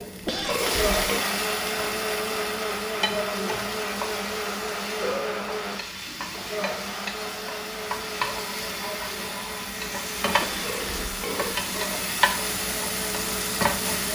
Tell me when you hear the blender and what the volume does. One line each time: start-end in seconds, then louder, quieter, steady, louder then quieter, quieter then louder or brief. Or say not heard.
0.0-14.0 quieter.